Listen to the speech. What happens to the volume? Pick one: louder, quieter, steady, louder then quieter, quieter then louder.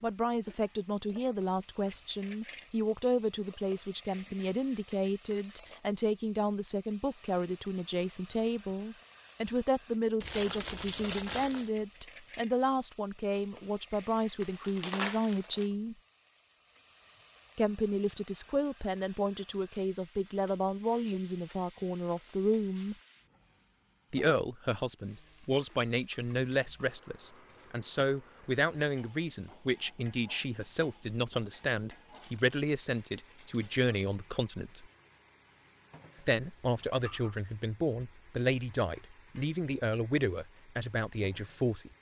steady.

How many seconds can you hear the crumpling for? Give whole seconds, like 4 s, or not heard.
5 s.